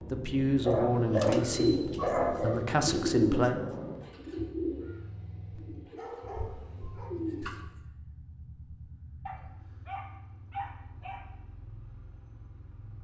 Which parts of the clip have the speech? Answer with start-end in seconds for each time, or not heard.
0.1-3.5.